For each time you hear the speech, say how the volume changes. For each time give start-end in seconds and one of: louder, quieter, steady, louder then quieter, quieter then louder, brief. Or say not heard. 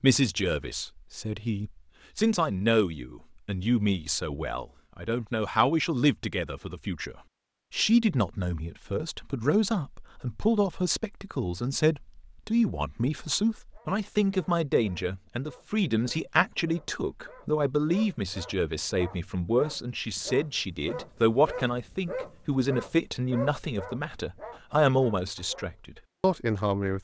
0.0-26.9 steady.